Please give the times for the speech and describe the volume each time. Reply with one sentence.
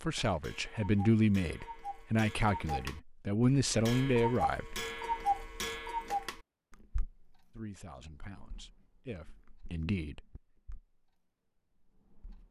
You can hear the speech from 0.0 to 4.8 s, at a steady volume; and briefly from 7.5 to 10.4 s.